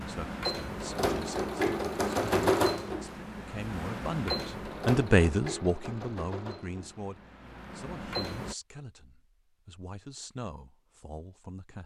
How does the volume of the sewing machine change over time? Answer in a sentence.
The loudness of the sewing machine goes down.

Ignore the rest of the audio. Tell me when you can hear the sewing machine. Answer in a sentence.
The sewing machine can be heard from 0.0 to 8.6 s.